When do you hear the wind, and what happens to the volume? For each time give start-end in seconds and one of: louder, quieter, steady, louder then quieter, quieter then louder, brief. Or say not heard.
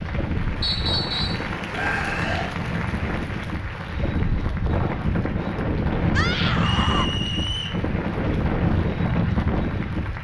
0.0-10.1 louder.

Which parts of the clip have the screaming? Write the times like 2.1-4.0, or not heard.
1.7-2.5, 6.2-7.1.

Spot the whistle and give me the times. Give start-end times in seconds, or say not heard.
0.6-1.4, 6.6-7.8.